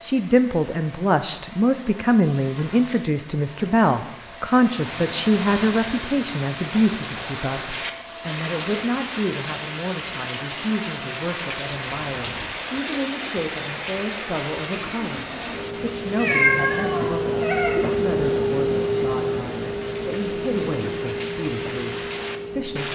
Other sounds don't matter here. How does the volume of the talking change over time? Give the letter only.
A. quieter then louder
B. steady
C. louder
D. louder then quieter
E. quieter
E.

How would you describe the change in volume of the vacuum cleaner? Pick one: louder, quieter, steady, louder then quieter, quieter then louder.
louder.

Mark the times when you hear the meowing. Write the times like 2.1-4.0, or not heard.
16.1-17.8.